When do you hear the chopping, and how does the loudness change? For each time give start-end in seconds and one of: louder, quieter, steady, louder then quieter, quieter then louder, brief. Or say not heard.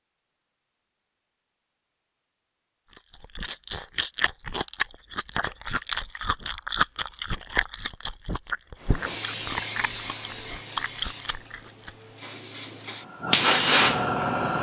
not heard.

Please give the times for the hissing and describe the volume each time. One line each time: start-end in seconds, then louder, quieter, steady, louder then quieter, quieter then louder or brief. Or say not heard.
8.8-14.5 quieter then louder.